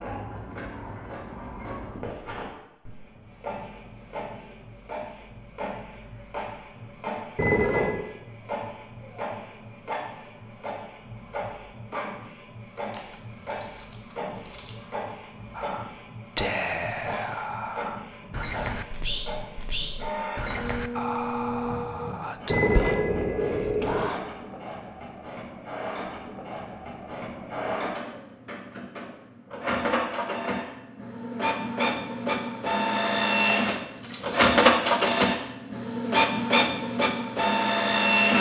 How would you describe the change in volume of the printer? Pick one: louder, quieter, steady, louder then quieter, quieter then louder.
louder.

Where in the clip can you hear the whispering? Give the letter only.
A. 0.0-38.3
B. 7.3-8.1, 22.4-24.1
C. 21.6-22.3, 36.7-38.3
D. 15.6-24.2
D.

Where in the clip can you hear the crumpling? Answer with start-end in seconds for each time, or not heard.
12.8-14.8, 33.3-35.3.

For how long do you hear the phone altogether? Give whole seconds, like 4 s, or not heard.
2 s.